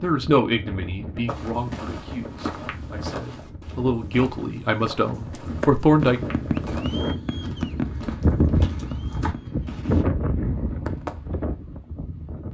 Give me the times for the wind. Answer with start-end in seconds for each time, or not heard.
0.0-12.4.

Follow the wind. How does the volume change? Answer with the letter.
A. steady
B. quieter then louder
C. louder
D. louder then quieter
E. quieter
C.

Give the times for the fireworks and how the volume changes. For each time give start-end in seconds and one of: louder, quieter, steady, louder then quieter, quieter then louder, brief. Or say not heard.
4.8-11.2 quieter.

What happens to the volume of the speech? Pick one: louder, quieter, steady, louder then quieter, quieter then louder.
quieter then louder.